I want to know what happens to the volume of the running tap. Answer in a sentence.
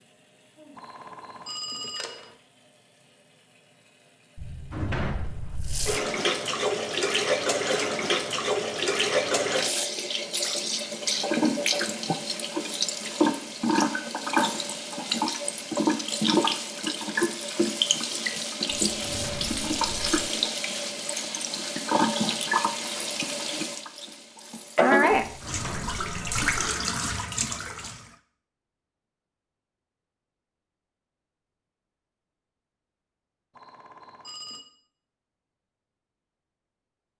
The loudness of the running tap goes up.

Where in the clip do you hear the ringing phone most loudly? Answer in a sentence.
The loudest moment of the ringing phone is at 2 seconds.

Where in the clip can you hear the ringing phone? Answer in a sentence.
You can hear the ringing phone from 0.8 to 2.4 s and from 33.5 to 34.6 s.